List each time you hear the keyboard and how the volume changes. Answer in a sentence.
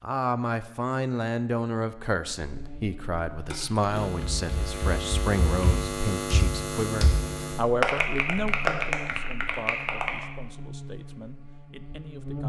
You can hear the keyboard from 3.5 to 10.2 s, getting louder.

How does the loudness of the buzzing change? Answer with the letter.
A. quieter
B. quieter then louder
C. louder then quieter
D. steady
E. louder
C.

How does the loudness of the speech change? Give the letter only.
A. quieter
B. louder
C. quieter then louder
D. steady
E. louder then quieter
A.